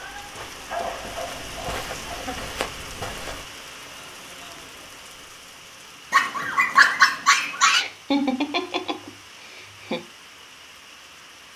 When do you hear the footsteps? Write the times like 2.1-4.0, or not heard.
0.0-3.5.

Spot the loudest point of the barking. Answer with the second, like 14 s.
7 s.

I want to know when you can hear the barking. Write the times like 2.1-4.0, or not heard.
0.7-2.3, 6.1-7.8.